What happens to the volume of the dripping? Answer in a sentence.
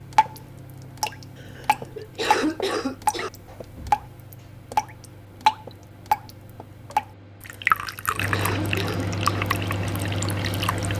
The volume of the dripping goes up, then down.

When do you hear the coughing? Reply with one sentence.
You can hear the coughing from 1.4 to 3.3 s and from 7.5 to 9.4 s.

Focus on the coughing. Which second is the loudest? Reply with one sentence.
The volume of the coughing peaks at 2 seconds.